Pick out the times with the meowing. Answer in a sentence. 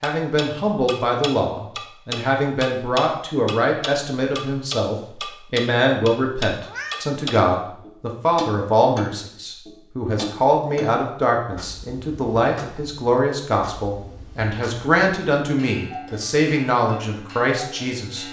The meowing can be heard from 6.6 to 7.2 s.